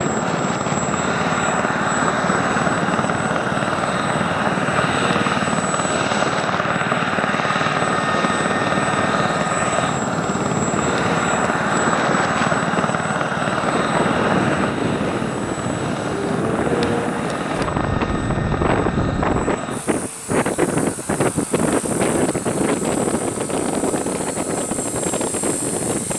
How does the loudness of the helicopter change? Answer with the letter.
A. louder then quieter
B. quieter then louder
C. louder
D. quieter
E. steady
D.